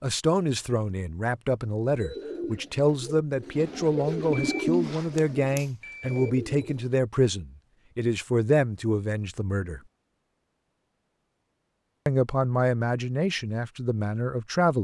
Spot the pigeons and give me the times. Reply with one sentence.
The pigeons can be heard from 1.9 to 7.0 s.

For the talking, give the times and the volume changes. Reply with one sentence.
You can hear the talking from 0.0 to 9.8 s, at a steady volume; and briefly from 12.1 to 14.7 s.